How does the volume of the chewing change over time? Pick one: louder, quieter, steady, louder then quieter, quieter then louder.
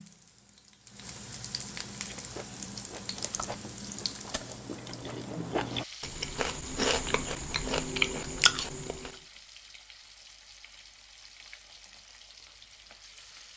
louder.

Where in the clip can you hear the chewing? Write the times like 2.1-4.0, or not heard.
1.9-9.2.